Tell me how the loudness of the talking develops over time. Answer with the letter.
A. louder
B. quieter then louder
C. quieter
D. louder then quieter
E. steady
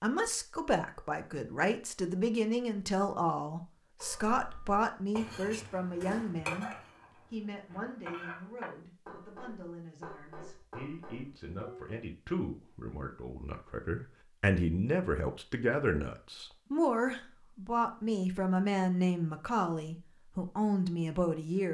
B.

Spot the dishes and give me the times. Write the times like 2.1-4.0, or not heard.
4.0-11.9.